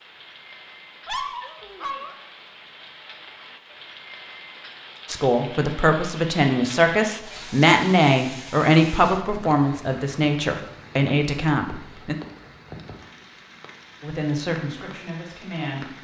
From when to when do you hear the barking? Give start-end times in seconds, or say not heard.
1.1-2.1.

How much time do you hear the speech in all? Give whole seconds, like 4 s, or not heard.
9 s.